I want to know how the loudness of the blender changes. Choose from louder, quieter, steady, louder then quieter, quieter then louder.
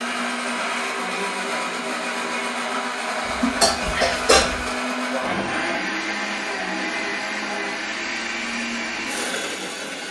steady.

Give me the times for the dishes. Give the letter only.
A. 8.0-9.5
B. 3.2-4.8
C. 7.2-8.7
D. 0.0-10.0
B.